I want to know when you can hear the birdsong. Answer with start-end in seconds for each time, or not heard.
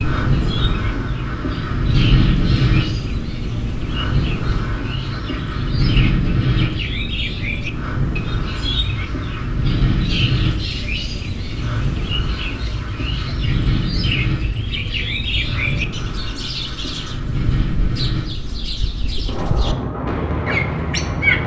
0.0-21.4.